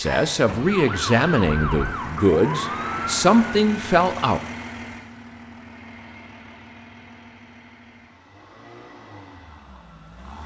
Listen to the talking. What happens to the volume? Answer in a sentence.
The volume of the talking stays about the same.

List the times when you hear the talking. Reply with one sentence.
You can hear the talking from 0.0 to 4.4 s.